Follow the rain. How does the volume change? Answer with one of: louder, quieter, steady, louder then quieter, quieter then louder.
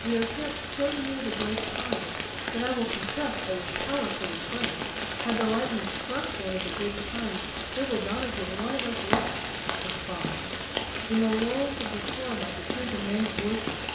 steady.